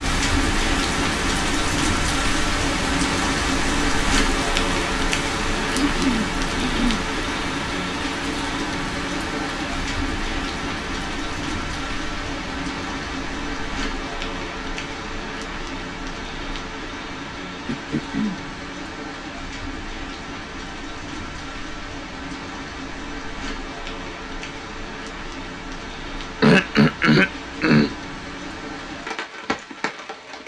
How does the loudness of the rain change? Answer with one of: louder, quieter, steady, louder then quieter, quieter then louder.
quieter.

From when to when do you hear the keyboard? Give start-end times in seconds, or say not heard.
not heard.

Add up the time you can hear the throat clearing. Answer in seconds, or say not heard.
4 s.